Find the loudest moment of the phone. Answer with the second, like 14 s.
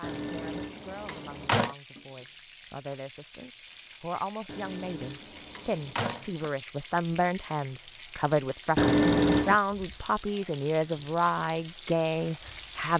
9 s.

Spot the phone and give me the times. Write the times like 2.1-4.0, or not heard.
0.0-1.8, 4.5-6.5, 8.8-9.6.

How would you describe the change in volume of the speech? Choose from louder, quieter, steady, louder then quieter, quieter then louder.
louder.